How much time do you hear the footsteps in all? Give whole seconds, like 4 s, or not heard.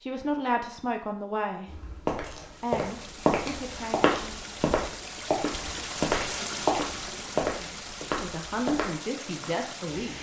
8 s.